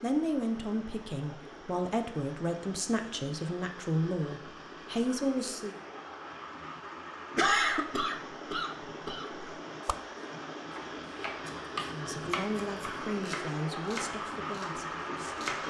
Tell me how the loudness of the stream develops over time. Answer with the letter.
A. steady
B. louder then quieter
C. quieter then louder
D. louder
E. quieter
D.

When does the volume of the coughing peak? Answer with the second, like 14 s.
8 s.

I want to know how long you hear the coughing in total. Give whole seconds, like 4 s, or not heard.
2 s.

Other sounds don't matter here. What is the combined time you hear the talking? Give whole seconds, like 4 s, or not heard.
9 s.